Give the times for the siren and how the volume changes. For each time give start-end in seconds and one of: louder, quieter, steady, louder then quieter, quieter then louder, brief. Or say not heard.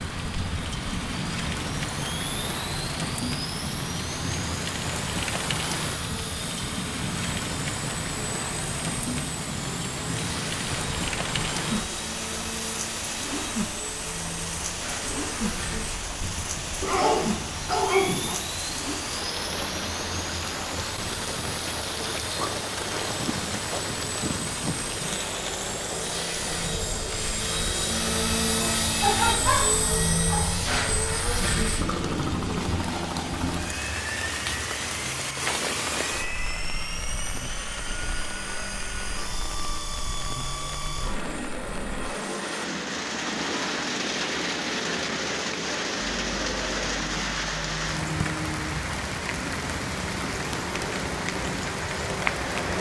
not heard.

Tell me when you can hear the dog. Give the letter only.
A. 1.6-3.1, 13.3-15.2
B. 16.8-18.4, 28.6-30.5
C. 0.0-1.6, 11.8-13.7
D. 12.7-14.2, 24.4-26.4
B.